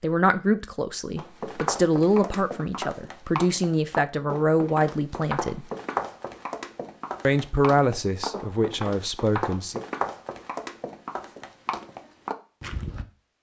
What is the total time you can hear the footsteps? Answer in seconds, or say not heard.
12 s.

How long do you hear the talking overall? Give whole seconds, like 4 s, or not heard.
8 s.